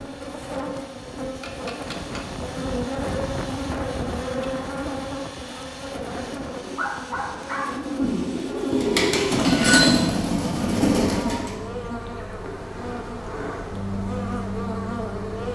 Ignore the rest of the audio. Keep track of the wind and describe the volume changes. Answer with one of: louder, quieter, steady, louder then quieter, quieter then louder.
louder then quieter.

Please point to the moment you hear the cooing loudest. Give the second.
10 s.